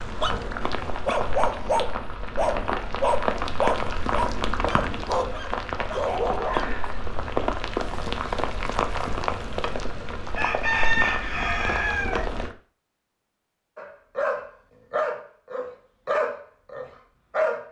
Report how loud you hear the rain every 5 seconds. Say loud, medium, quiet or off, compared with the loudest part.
loud, loud, loud, off.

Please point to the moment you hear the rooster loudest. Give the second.
11 s.